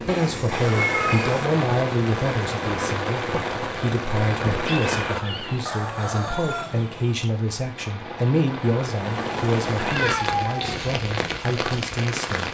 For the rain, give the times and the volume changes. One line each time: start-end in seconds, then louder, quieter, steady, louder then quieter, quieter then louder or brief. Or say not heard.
0.0-12.4 quieter then louder.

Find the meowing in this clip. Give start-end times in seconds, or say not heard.
0.1-1.4, 4.6-5.7, 9.8-10.8.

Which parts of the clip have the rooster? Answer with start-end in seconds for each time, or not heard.
5.7-7.1.